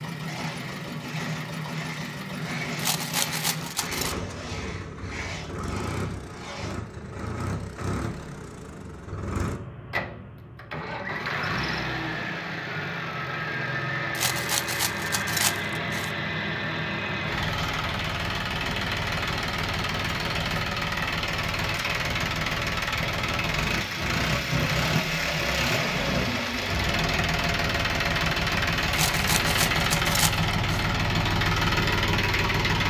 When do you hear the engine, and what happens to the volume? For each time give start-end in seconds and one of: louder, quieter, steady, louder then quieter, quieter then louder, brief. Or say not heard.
0.0-32.8 louder.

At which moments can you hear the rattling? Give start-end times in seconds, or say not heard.
2.8-4.2, 14.1-16.1, 28.9-30.9.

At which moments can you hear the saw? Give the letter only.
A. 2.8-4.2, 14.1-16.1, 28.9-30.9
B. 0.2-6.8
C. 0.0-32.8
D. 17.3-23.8
B.